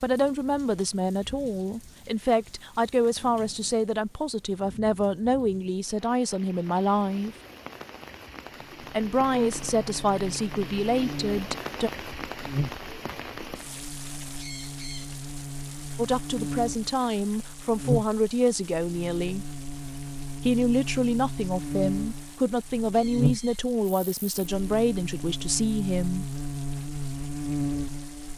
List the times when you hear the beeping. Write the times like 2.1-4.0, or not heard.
not heard.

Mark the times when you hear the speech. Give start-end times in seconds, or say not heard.
0.0-7.3, 8.9-11.9, 15.9-19.4, 20.4-26.2.